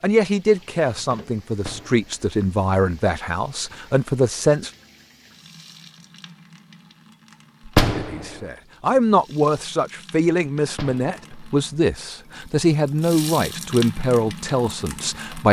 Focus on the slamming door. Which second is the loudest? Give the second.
8 s.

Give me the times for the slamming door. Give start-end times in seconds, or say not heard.
1.6-2.2, 7.7-8.2, 10.7-11.3.